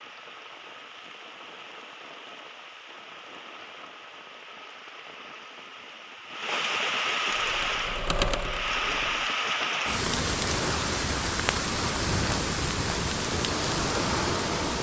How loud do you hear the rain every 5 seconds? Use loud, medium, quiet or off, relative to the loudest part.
quiet, loud, loud.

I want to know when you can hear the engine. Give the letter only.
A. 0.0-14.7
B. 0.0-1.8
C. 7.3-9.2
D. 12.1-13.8
C.